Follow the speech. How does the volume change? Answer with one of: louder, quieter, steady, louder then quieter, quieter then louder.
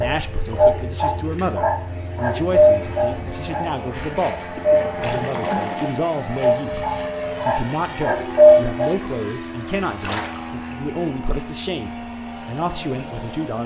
steady.